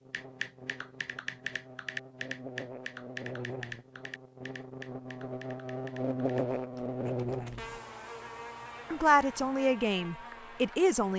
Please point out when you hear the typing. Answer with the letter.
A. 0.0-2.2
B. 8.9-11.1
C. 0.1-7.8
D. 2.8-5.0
C.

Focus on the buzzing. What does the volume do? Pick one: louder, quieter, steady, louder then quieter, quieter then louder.
louder then quieter.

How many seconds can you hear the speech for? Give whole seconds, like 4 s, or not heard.
2 s.